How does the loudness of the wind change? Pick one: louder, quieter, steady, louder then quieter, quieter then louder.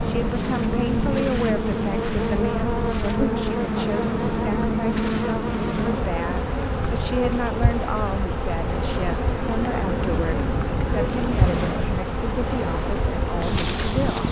steady.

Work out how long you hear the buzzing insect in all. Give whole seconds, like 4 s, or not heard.
14 s.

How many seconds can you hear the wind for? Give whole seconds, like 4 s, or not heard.
14 s.